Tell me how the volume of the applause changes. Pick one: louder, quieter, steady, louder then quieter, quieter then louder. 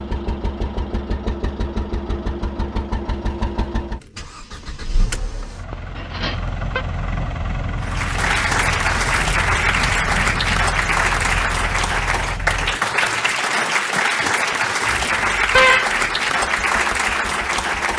steady.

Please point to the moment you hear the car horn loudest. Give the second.
16 s.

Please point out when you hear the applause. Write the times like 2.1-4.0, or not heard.
7.8-17.9.